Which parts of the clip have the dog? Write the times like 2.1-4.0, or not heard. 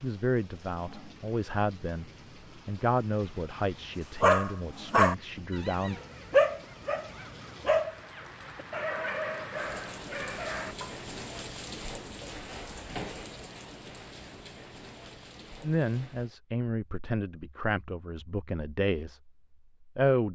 4.2-11.0.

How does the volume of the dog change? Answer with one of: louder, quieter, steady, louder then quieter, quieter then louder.
quieter.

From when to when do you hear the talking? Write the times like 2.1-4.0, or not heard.
0.0-6.0, 15.6-20.3.